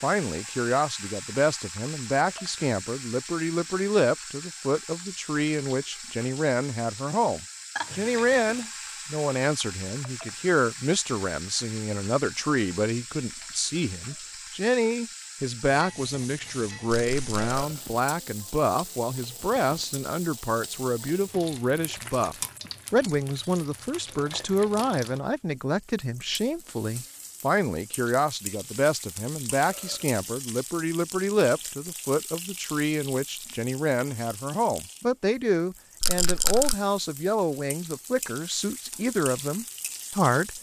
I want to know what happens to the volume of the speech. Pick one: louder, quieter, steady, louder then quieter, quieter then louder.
steady.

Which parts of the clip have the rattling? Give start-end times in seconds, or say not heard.
16.9-17.6, 36.0-36.8.